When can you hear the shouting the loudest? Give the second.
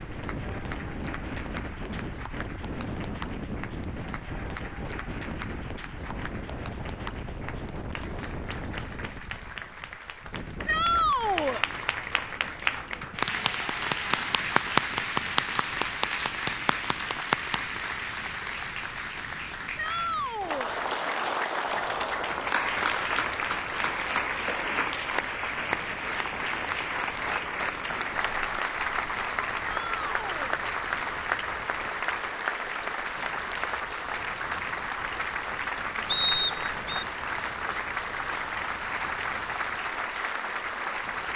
11 s.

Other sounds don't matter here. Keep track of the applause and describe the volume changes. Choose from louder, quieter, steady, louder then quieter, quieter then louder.
louder.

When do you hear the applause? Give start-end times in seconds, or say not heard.
0.0-41.3.